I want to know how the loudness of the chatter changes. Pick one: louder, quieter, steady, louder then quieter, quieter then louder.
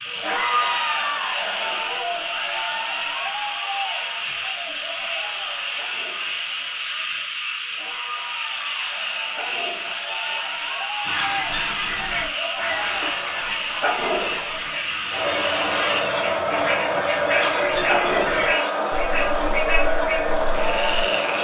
quieter then louder.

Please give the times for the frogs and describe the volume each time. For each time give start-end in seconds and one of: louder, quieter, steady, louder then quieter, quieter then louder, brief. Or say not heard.
0.0-21.3 steady.